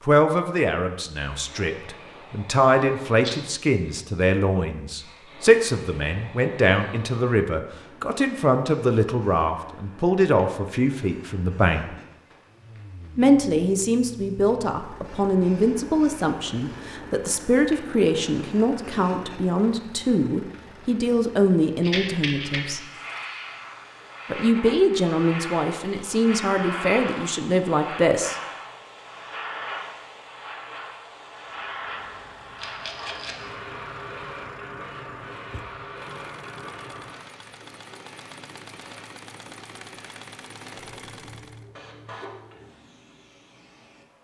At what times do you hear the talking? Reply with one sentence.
The talking can be heard from 0.1 to 11.8 s, from 13.2 to 22.8 s and from 24.3 to 28.4 s.